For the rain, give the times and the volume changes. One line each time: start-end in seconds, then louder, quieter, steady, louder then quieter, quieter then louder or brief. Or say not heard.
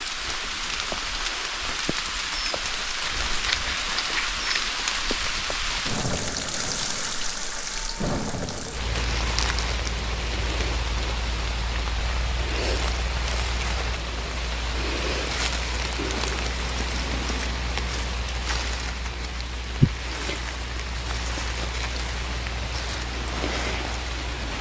0.0-24.5 steady.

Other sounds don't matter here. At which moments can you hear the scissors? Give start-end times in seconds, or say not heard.
3.0-5.2, 15.9-17.6.